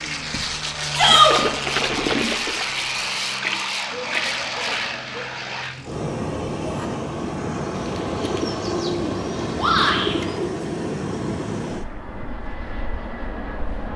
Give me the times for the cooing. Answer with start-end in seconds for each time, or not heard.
3.9-5.4, 7.7-10.6.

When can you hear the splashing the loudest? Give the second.
2 s.